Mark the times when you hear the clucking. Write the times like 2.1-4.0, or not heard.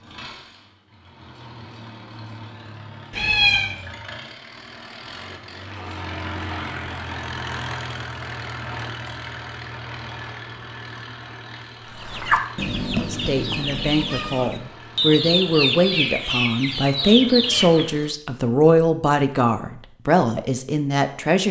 11.8-18.1.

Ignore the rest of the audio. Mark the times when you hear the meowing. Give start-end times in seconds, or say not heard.
3.1-3.8.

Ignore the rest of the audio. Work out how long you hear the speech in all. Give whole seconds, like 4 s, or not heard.
8 s.